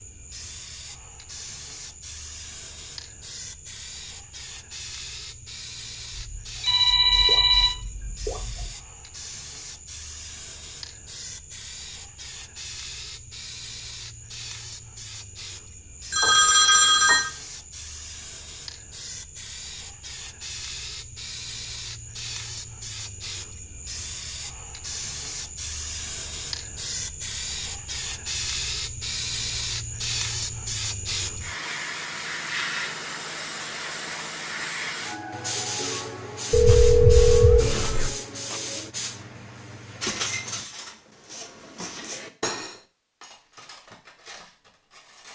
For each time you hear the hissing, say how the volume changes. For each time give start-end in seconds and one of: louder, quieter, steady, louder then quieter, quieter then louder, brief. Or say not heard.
0.0-40.6 louder.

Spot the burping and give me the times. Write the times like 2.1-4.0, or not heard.
not heard.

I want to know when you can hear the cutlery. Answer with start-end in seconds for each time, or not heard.
40.0-45.3.